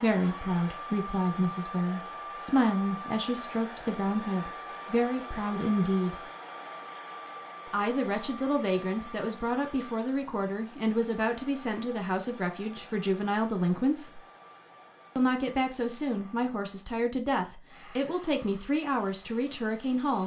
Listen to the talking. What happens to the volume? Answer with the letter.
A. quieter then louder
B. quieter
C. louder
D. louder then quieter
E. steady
E.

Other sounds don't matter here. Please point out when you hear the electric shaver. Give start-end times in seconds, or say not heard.
not heard.